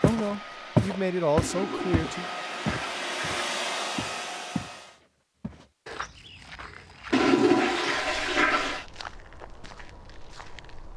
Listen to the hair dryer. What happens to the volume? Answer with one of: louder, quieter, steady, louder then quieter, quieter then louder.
louder.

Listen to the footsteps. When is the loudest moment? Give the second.
1 s.